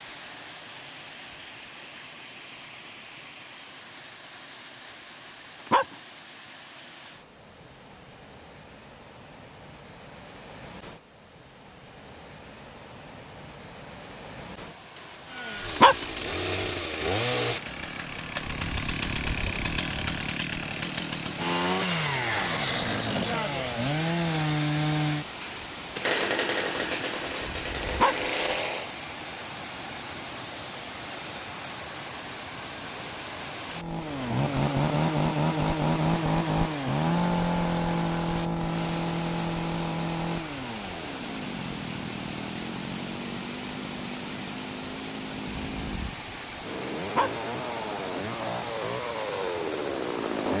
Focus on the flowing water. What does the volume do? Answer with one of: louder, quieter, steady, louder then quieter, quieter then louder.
louder.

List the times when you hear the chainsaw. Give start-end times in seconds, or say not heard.
15.2-28.9, 33.7-50.5.